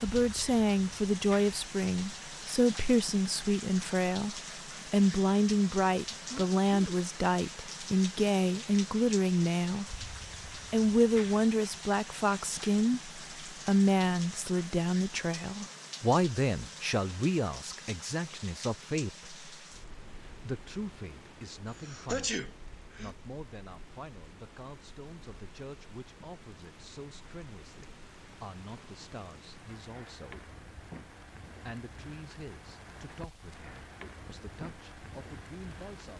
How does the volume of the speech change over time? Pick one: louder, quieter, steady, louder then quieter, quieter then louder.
quieter.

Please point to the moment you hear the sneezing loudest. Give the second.
22 s.